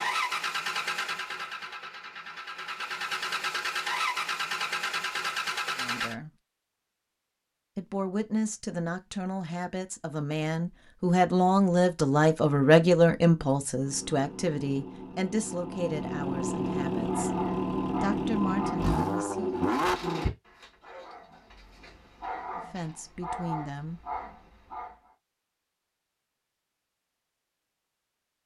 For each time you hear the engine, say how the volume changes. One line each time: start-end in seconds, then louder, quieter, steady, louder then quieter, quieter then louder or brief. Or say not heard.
0.0-6.2 quieter then louder
13.8-20.3 louder.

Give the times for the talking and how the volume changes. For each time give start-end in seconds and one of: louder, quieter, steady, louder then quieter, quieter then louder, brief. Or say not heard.
5.8-6.3 brief
7.8-17.4 louder then quieter
18.0-19.5 brief
22.6-24.0 brief.